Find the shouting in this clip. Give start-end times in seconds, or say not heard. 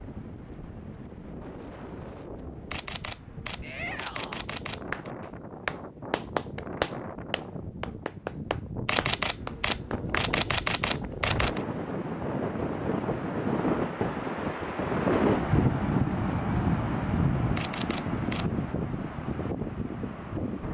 3.6-4.5.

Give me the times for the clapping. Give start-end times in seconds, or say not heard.
4.9-10.2.